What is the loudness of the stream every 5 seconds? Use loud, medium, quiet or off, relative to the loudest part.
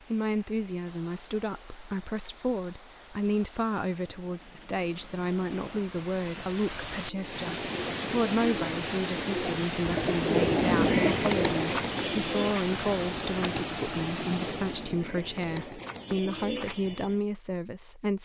quiet, loud, loud, off.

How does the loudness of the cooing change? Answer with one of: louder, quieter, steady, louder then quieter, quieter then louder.
louder then quieter.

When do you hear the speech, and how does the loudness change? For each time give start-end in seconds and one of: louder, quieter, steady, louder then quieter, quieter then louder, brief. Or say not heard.
0.1-18.2 steady.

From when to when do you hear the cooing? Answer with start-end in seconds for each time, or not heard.
7.0-17.2.